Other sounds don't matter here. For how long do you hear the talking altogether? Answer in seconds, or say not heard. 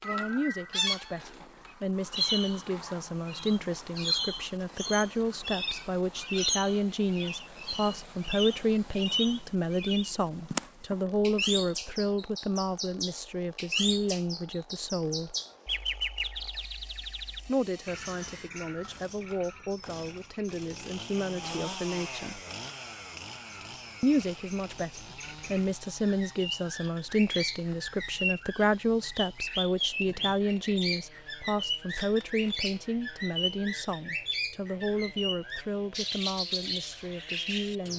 34 s.